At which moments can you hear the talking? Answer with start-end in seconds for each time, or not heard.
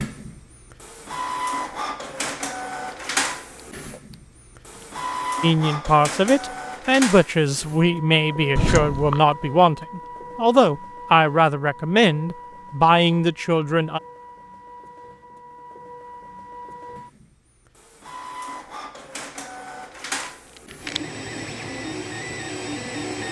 5.4-14.0.